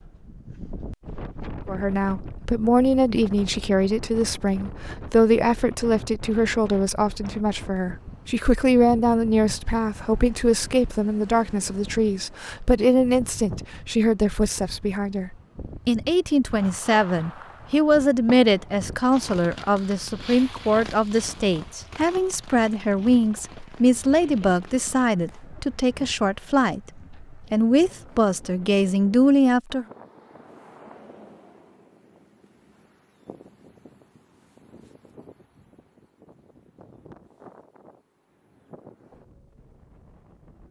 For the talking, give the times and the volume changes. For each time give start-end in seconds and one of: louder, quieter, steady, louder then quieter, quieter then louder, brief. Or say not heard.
1.6-29.9 steady.